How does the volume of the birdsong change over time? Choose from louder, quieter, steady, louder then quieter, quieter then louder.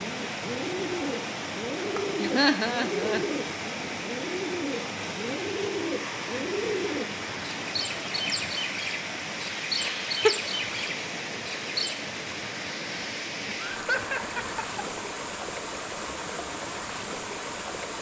steady.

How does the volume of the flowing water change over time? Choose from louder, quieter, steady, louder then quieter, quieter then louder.
steady.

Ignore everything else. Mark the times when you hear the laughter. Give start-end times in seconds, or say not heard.
2.1-3.4, 9.8-10.5, 13.7-15.0.